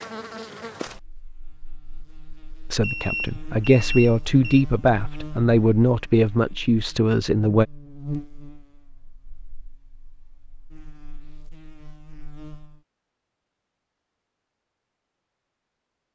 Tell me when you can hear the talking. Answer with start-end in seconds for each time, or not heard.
2.7-7.7.